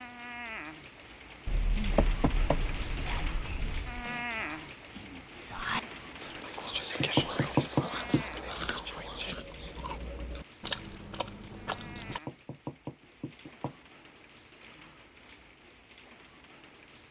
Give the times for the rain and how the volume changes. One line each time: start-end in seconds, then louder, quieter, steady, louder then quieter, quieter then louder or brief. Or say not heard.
0.0-17.0 quieter.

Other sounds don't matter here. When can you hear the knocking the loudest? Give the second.
8 s.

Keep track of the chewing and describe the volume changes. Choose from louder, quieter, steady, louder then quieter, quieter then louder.
louder then quieter.